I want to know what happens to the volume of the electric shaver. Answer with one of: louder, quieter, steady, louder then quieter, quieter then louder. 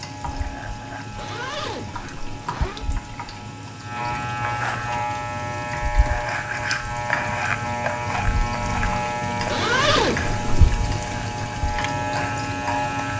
louder.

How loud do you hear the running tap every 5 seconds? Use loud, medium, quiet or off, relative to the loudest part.
medium, loud, loud.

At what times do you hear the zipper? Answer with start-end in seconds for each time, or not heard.
1.1-2.9, 9.4-10.7.